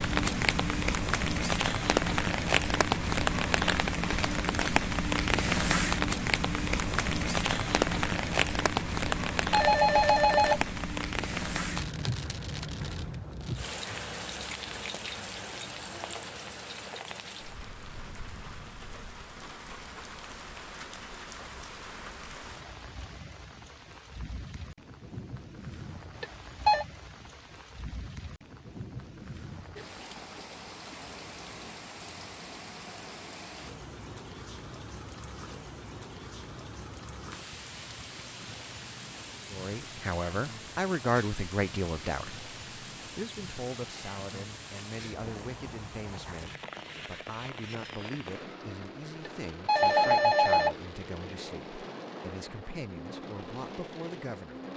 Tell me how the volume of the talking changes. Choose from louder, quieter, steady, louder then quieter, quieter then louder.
quieter.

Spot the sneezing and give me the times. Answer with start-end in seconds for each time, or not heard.
not heard.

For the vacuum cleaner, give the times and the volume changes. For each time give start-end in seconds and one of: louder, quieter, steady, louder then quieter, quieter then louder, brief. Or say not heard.
not heard.